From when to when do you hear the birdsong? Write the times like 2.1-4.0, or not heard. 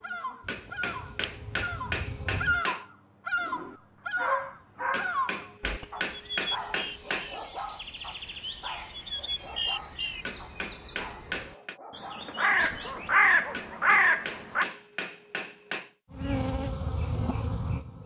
0.0-14.7.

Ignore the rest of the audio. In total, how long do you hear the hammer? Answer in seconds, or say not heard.
9 s.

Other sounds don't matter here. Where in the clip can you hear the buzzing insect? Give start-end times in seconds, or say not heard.
0.0-2.6, 16.1-18.0.